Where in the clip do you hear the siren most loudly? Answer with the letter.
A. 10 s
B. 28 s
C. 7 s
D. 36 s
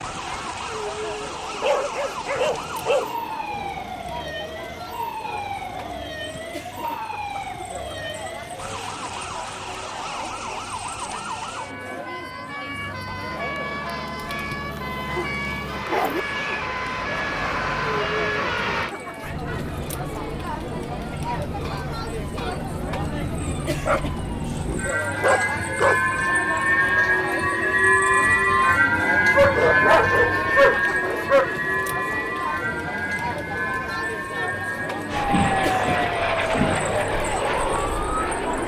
B.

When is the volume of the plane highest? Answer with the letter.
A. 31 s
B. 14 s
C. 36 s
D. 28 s
C.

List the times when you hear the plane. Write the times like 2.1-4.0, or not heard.
12.7-18.9, 35.0-38.6.